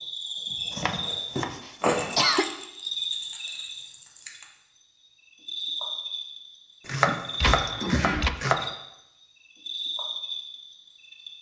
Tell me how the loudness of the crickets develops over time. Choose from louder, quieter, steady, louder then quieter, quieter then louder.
quieter.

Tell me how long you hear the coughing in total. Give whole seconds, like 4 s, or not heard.
2 s.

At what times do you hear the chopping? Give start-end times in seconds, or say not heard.
0.7-2.2, 6.8-8.7.